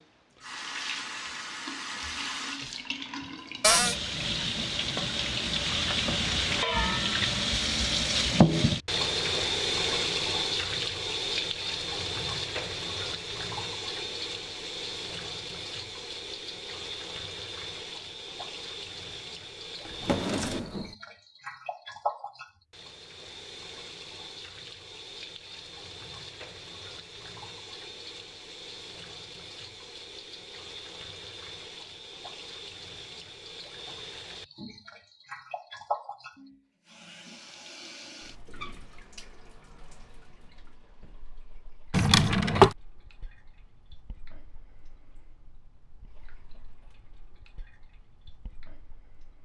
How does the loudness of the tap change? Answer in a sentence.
The loudness of the tap goes down.